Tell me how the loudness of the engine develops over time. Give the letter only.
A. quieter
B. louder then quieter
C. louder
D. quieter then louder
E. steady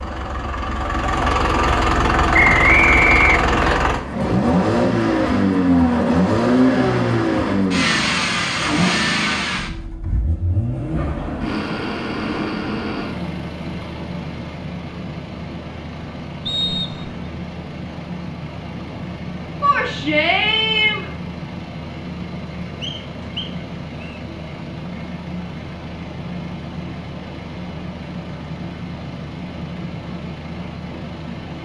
A.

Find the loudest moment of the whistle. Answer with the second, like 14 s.
3 s.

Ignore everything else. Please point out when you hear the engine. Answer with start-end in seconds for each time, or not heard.
0.0-31.5.